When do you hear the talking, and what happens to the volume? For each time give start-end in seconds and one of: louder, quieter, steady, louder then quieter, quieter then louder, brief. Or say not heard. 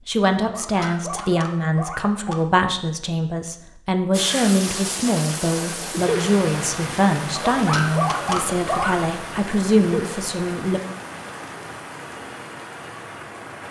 0.1-10.8 steady.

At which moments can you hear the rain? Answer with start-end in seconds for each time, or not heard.
4.1-13.6.